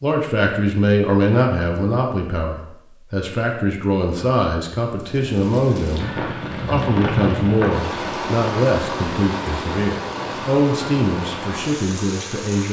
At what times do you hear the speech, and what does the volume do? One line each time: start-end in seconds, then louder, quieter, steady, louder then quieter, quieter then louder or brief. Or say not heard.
0.0-12.6 steady.